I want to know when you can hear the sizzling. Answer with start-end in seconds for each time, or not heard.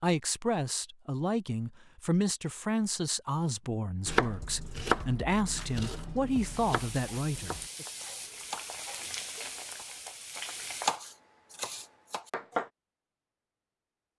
6.3-11.0.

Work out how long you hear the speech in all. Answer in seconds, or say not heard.
8 s.